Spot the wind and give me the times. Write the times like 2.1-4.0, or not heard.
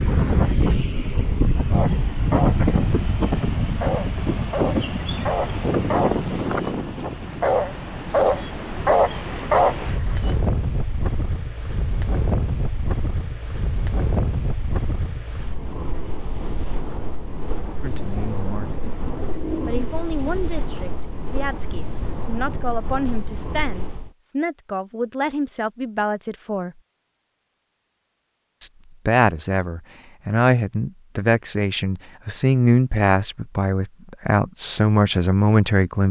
0.0-24.1.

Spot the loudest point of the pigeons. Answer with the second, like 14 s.
20 s.